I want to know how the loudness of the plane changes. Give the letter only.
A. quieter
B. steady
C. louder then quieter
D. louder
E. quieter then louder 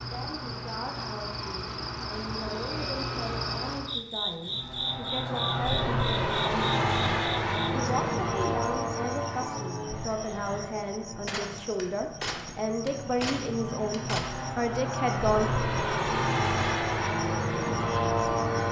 E.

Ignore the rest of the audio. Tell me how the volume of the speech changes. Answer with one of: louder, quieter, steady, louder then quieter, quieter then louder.
louder.